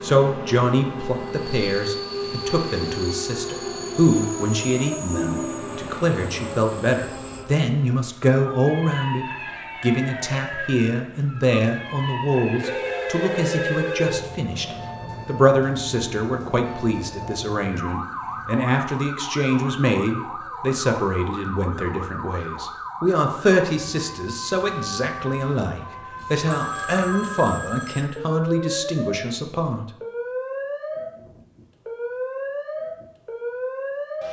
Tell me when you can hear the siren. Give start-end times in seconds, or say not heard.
0.0-34.2.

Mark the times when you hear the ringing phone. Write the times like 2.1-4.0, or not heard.
5.1-5.8, 12.6-14.2, 26.5-28.1.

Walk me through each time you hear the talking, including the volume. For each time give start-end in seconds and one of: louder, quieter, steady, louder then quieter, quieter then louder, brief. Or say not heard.
0.0-29.9 steady.